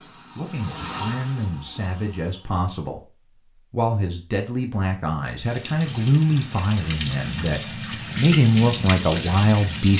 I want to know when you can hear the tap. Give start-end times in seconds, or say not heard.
0.0-2.5, 5.4-9.9.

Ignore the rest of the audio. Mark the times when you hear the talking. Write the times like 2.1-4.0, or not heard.
0.3-3.0, 3.7-9.9.